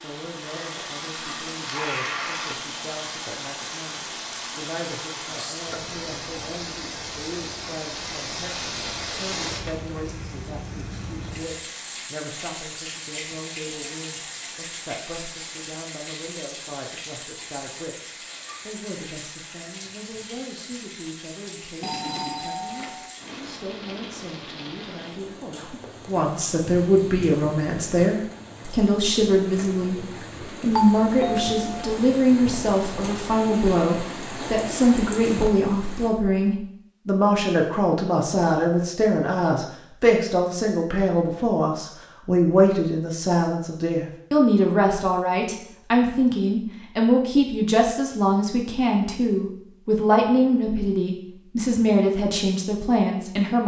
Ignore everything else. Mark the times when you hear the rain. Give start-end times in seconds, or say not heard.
0.0-36.1.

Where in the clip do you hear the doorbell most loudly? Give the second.
31 s.